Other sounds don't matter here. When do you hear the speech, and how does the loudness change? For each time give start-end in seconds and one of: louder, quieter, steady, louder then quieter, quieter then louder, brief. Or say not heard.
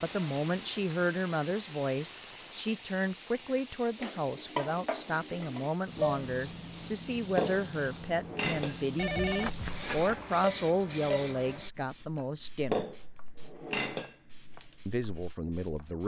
0.0-12.8 steady
14.8-16.0 brief.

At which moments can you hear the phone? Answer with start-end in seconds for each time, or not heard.
8.9-10.2.